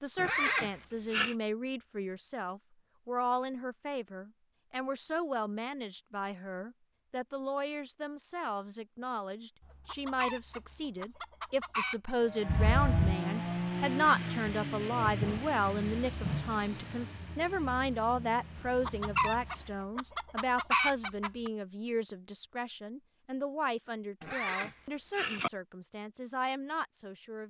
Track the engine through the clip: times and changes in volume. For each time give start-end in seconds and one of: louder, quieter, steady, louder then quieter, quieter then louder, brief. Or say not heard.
12.2-19.8 quieter.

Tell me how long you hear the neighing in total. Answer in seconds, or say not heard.
3 s.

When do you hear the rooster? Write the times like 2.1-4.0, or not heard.
9.6-12.2, 18.6-21.5.